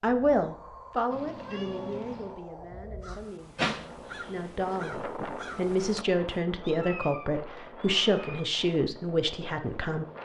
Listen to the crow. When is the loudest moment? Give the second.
4 s.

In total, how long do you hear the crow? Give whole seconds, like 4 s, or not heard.
3 s.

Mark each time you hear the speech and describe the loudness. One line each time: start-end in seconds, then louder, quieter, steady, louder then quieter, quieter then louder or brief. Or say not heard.
0.0-10.1 quieter then louder.